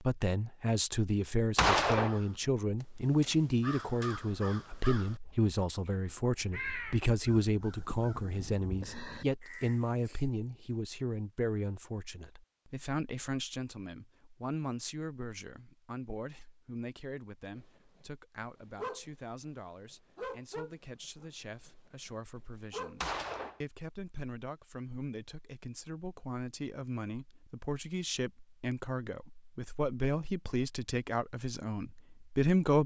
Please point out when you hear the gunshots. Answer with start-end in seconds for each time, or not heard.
1.6-2.1, 23.0-23.6.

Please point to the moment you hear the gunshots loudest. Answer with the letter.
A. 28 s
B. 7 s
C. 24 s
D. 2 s
D.